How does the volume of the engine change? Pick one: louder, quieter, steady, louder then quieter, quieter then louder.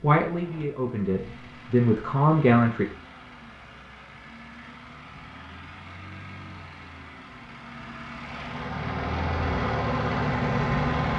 louder.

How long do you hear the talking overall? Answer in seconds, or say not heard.
3 s.